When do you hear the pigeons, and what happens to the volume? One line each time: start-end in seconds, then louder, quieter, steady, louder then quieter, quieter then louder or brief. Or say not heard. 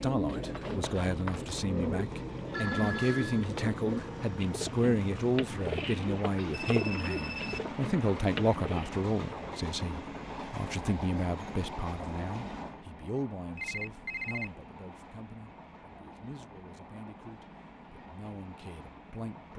0.0-8.9 steady.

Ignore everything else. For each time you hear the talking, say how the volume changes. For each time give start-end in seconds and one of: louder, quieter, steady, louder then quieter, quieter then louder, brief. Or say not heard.
0.0-19.5 quieter.